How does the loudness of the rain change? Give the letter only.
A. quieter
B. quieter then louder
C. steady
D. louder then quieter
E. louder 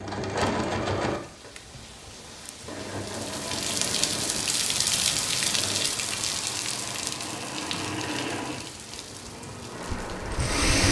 D.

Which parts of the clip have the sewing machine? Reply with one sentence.
You can hear the sewing machine from 0.0 to 10.8 s.